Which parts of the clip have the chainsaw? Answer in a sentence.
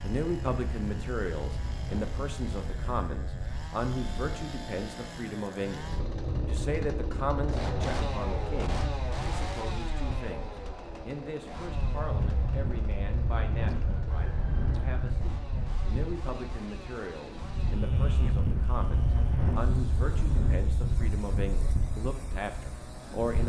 You can hear the chainsaw from 0.0 to 23.4 s.